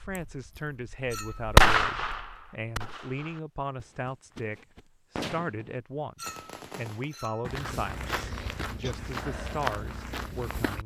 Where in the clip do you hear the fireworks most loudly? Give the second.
2 s.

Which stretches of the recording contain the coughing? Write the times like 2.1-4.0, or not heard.
0.1-0.7, 8.1-8.9.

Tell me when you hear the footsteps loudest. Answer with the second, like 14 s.
10 s.